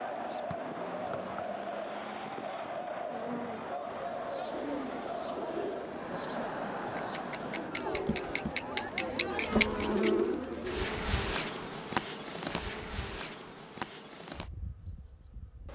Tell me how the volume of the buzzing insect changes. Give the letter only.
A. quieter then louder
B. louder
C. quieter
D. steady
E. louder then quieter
E.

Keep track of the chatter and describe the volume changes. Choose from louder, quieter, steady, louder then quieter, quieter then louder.
steady.